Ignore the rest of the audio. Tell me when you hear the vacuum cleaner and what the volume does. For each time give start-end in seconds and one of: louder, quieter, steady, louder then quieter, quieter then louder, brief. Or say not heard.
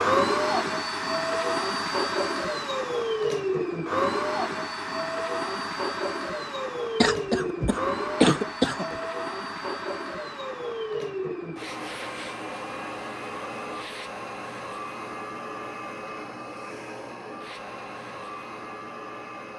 0.0-19.5 quieter.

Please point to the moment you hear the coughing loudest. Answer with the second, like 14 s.
8 s.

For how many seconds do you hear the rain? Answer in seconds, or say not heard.
not heard.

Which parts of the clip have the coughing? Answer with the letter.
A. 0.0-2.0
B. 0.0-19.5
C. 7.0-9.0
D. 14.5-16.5
C.